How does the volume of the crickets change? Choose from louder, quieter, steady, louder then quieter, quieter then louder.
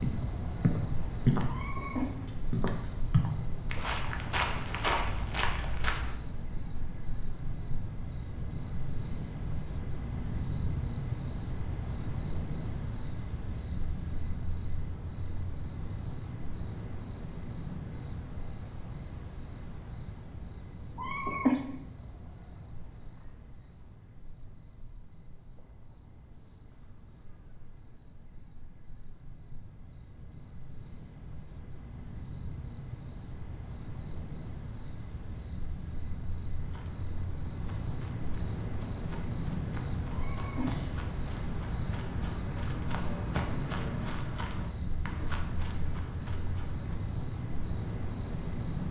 quieter then louder.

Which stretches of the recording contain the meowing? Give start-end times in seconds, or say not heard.
1.4-2.0, 20.9-21.6, 40.1-40.9.